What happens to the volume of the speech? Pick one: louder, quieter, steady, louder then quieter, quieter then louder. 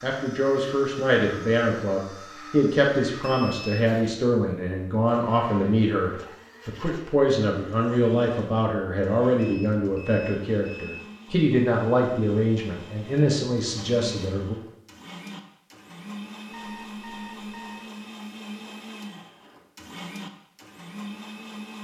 steady.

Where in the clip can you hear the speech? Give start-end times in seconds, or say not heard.
0.0-14.6.